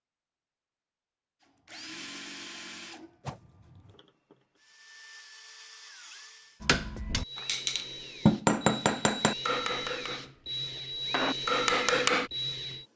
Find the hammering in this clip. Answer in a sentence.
The hammering can be heard from 6.6 to 12.3 s.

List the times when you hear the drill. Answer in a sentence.
You can hear the drill from 1.4 to 12.8 s.